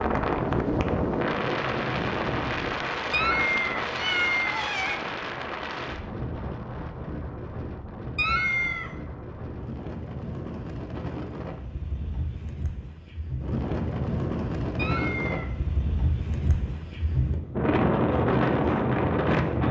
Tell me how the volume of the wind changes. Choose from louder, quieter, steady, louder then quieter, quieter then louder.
quieter then louder.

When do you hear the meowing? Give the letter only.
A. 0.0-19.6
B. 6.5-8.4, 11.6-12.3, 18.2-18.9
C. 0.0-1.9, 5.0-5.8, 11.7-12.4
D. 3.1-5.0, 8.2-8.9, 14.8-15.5
D.